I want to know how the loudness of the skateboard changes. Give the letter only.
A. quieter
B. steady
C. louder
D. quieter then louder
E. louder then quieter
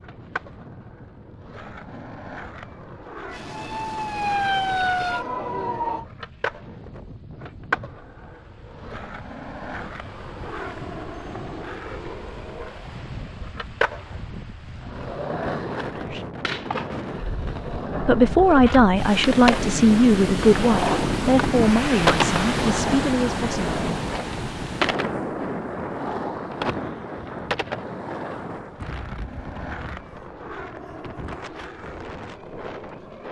E.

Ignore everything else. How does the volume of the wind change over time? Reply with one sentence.
The volume of the wind goes up, then down.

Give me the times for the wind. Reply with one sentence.
You can hear the wind from 0.0 to 33.2 s.